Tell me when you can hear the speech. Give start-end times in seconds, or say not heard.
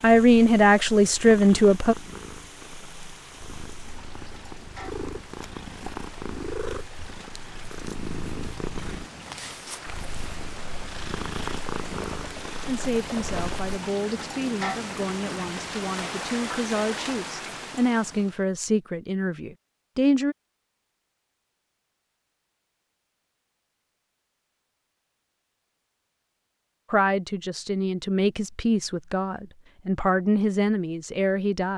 0.0-1.9, 12.6-20.4, 26.9-31.7.